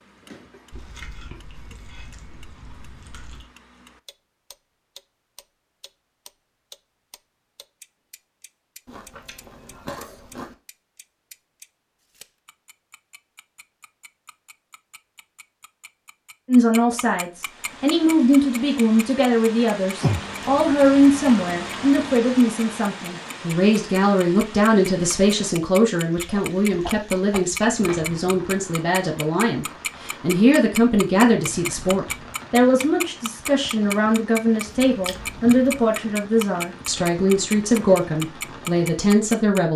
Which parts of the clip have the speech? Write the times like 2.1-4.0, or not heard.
16.4-39.7.